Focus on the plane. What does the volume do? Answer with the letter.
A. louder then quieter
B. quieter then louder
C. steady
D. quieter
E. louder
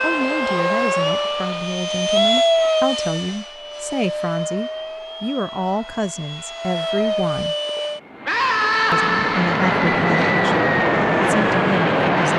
B.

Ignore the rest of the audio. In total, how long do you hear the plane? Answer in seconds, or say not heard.
12 s.